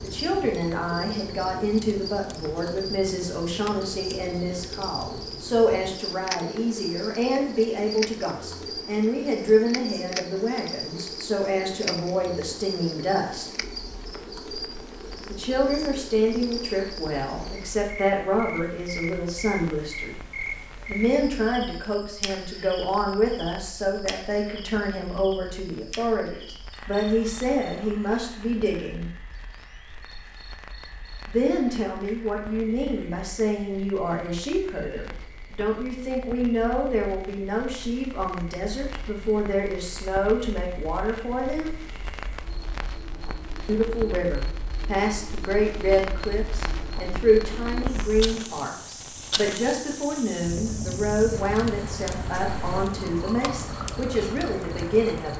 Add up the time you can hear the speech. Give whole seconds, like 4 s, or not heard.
49 s.